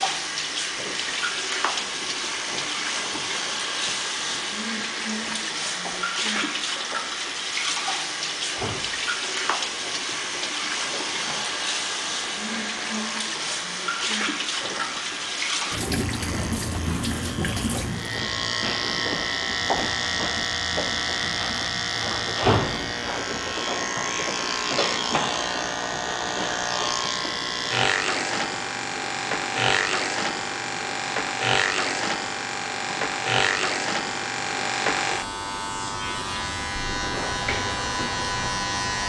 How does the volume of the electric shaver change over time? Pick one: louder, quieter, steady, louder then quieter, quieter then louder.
louder.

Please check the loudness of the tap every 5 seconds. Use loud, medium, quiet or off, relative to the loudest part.
loud, loud, loud, loud, quiet, quiet, quiet, quiet.